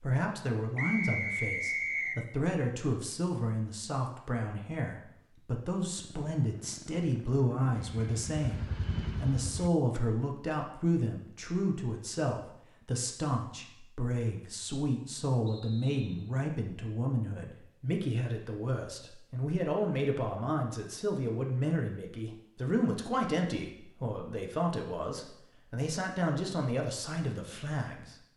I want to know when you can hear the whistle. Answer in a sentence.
The whistle can be heard from 0.8 to 2.2 s and from 15.4 to 16.3 s.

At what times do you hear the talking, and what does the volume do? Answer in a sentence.
You can hear the talking from 0.0 to 28.1 s, at a steady volume.